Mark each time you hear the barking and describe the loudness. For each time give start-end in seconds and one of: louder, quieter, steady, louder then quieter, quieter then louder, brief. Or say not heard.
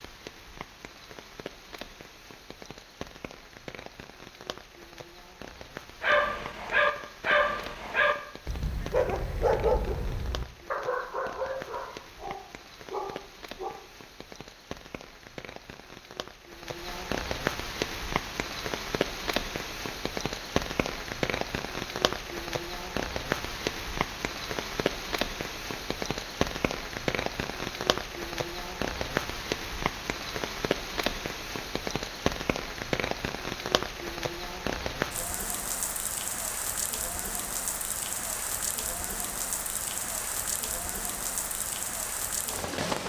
6.0-13.8 quieter.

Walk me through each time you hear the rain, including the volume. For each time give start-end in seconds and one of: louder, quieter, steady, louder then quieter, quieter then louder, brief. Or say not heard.
0.0-43.0 louder.